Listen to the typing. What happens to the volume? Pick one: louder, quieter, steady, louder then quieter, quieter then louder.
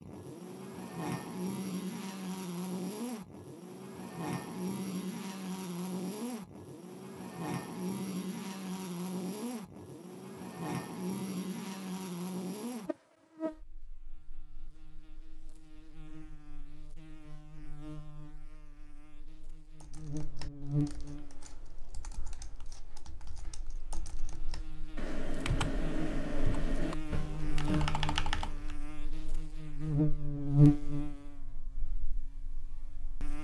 louder.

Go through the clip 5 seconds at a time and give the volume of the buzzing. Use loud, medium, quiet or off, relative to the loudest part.
medium, medium, medium, quiet, medium, medium, loud.